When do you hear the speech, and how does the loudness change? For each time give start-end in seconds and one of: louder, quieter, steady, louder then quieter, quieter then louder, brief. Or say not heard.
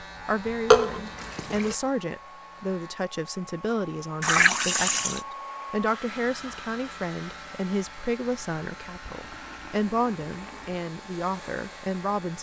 0.2-12.3 steady.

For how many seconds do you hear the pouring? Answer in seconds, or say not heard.
4 s.